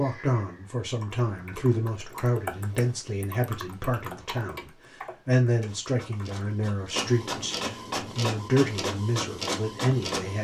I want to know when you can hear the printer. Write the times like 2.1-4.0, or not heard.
5.5-10.4.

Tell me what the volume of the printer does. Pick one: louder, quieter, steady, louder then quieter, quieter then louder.
louder.